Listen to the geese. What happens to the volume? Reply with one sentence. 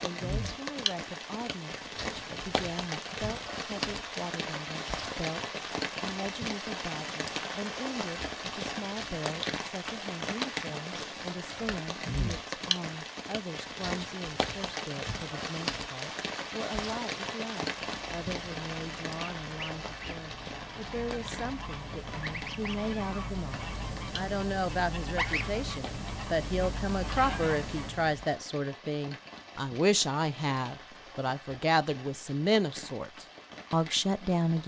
The loudness of the geese goes up.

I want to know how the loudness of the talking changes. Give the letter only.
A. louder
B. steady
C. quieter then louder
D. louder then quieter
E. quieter
A.